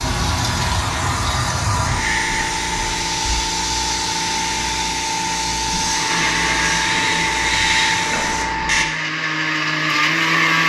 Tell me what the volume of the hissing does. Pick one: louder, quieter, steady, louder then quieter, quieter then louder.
steady.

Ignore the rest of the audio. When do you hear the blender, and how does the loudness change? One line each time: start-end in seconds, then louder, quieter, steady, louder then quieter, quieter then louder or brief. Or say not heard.
5.8-10.6 quieter then louder.